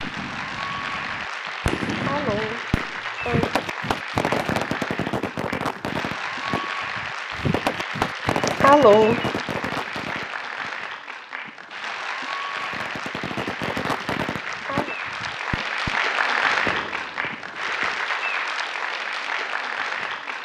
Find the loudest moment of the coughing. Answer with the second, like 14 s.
9 s.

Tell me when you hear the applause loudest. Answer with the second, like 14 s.
16 s.